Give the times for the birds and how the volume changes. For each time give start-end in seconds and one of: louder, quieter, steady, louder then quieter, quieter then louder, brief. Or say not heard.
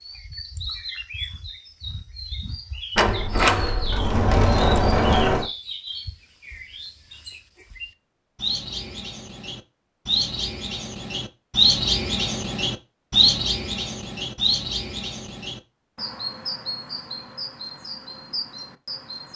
0.0-19.3 louder then quieter.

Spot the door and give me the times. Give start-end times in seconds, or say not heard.
3.0-5.5.